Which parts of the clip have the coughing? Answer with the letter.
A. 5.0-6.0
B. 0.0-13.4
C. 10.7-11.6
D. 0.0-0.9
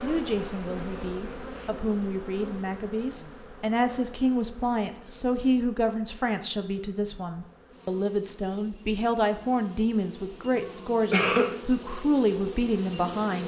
C.